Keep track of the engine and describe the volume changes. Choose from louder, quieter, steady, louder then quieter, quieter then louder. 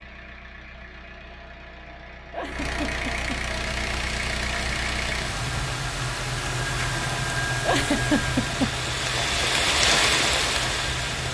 louder then quieter.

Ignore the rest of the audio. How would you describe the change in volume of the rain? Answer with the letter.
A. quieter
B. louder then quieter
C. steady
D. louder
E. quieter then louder
D.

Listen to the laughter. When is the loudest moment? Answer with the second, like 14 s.
8 s.